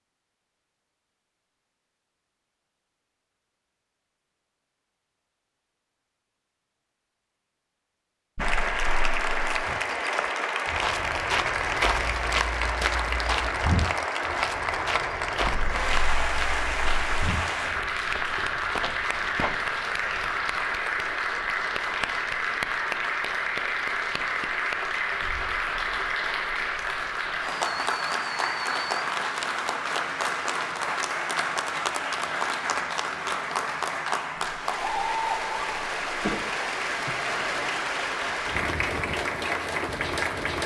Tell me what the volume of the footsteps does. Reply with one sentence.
The volume of the footsteps goes down.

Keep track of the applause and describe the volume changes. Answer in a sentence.
The loudness of the applause stays about the same.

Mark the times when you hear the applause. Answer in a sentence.
You can hear the applause from 8.3 to 40.6 s.